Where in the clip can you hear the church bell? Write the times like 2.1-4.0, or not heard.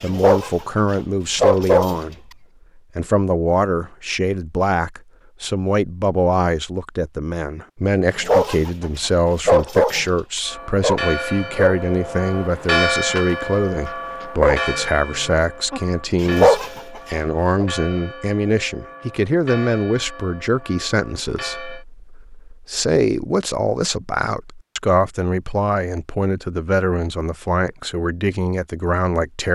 10.4-21.9.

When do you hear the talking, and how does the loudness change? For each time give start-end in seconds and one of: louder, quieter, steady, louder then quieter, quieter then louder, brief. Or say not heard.
0.0-29.5 steady.